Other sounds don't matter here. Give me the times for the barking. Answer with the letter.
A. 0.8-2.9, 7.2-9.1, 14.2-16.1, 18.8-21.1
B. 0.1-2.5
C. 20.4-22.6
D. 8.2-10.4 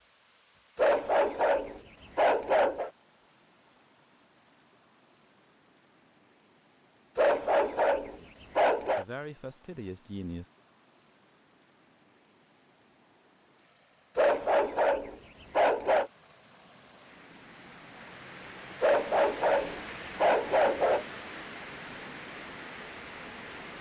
A.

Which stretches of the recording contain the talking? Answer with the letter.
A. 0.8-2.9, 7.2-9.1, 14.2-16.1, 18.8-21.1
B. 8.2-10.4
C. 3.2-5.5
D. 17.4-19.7
B.